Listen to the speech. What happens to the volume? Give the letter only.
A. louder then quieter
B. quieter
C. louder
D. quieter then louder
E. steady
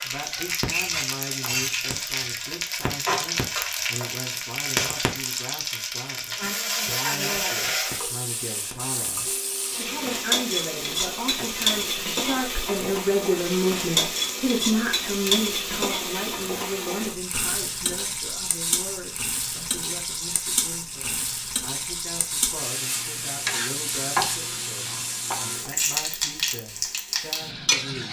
A.